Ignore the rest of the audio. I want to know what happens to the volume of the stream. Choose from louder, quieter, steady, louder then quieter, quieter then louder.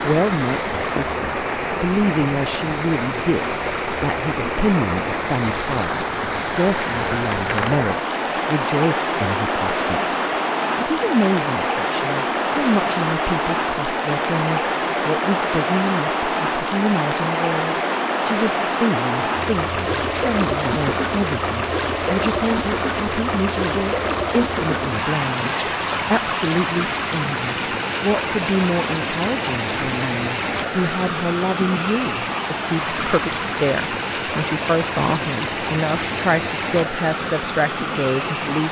steady.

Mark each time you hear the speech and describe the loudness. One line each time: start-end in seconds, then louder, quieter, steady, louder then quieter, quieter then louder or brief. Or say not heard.
0.0-38.6 steady.